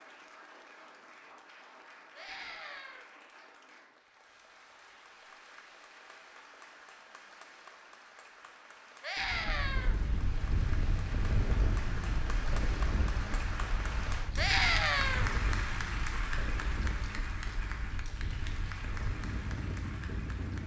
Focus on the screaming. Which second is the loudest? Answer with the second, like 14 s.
15 s.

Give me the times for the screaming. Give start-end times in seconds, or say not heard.
2.1-3.0, 9.0-9.9, 14.3-15.3.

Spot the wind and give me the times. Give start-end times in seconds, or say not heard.
9.2-20.6.